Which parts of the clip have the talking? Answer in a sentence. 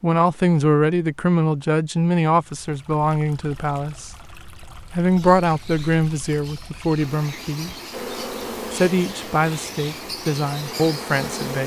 You can hear the talking from 0.0 to 4.1 s, from 4.9 to 7.8 s and from 8.7 to 11.6 s.